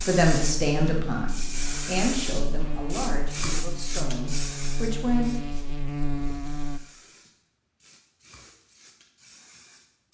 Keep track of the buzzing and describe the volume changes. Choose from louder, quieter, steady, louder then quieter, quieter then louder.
louder.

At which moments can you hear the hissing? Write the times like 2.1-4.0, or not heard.
0.0-10.0.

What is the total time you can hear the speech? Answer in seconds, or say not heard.
5 s.